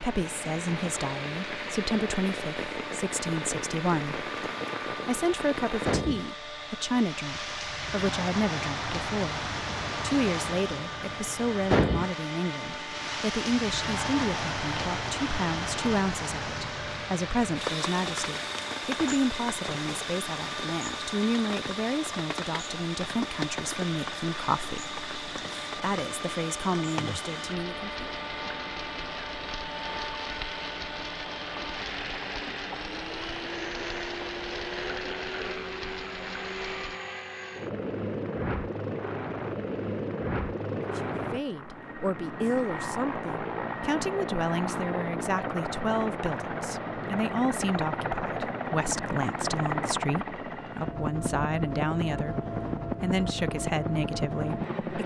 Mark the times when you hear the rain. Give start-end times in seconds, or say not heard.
0.0-37.0.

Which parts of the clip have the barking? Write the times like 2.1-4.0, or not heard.
not heard.